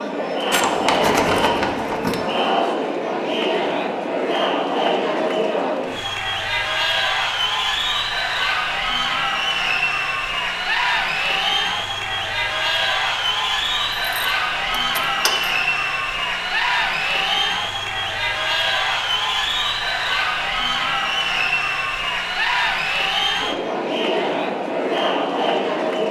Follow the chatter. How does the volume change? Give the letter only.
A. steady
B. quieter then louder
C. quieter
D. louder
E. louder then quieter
A.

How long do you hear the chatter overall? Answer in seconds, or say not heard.
26 s.